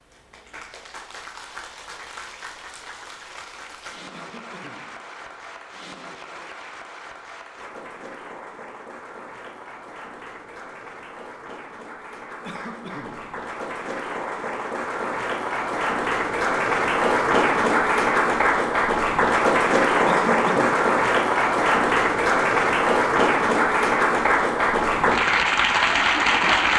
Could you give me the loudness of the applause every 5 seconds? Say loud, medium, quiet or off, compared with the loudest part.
quiet, quiet, quiet, loud, loud, loud.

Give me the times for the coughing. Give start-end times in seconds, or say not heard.
4.1-5.0, 12.4-13.2, 20.1-20.9.